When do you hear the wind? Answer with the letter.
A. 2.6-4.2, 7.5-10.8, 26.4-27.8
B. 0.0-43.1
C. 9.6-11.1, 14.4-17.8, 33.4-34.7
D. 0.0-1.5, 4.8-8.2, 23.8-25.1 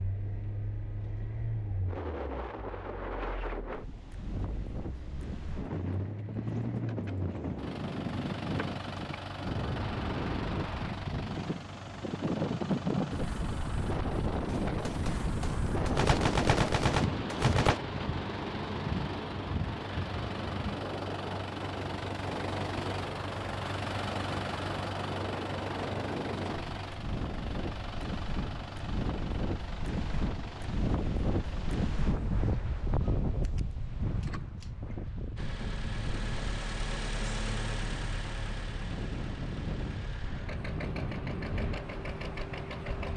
B.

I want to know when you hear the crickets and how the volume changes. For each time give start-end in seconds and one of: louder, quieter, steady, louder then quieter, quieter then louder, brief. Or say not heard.
not heard.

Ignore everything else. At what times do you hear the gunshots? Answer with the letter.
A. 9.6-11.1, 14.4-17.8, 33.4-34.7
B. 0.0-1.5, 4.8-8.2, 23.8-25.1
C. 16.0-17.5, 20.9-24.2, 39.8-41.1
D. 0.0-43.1
A.